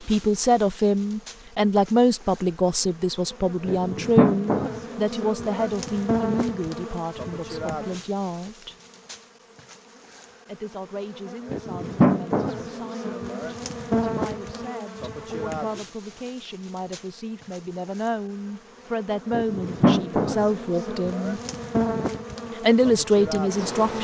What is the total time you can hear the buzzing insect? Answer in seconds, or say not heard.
24 s.